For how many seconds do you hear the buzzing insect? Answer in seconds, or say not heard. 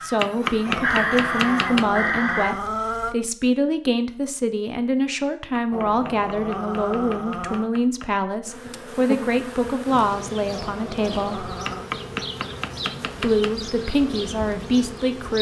7 s.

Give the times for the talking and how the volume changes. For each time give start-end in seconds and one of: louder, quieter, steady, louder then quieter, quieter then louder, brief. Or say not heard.
0.0-11.5 steady
13.2-15.3 brief.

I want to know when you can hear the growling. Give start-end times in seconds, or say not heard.
0.7-3.1, 5.7-7.7, 10.5-11.9.